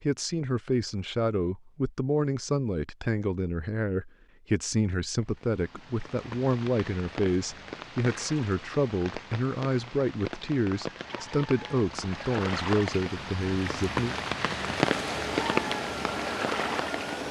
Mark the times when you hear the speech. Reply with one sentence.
You can hear the speech from 0.0 to 14.2 s.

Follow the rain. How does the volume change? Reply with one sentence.
The loudness of the rain goes up.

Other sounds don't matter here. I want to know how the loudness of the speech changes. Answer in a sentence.
The loudness of the speech stays about the same.